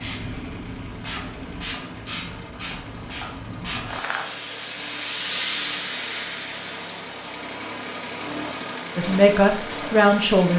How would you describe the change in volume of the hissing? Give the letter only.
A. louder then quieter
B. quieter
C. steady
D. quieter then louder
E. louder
A.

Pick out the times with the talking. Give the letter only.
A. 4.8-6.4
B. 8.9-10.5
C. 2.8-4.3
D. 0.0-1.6
B.